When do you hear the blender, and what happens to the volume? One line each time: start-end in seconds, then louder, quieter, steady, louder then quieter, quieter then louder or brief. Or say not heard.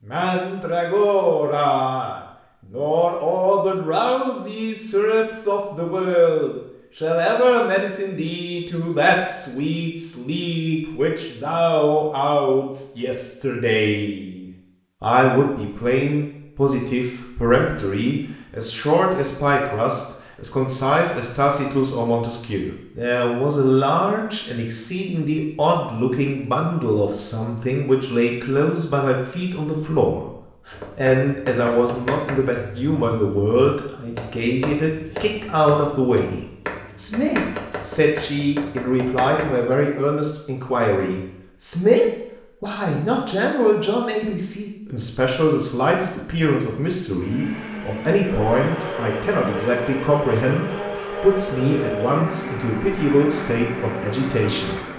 47.1-54.9 steady.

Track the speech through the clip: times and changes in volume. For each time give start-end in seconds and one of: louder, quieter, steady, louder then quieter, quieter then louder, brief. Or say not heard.
0.1-54.9 steady.